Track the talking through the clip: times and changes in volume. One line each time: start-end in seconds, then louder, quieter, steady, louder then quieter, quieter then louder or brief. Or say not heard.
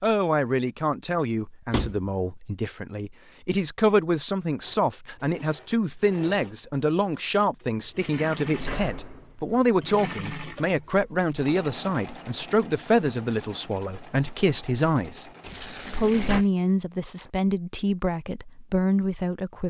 0.0-19.6 steady.